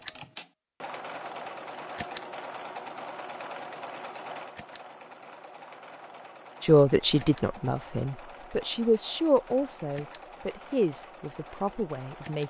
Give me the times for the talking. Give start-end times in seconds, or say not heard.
6.6-12.4.